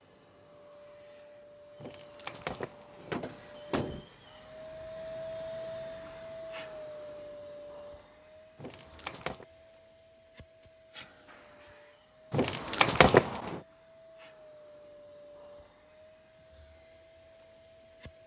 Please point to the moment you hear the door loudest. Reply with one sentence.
The loudest moment of the door is at 13 seconds.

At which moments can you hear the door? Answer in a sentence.
The door can be heard from 1.8 to 4.0 s, from 8.6 to 9.4 s and from 12.3 to 13.6 s.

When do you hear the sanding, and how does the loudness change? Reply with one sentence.
The sanding can't be heard in this clip.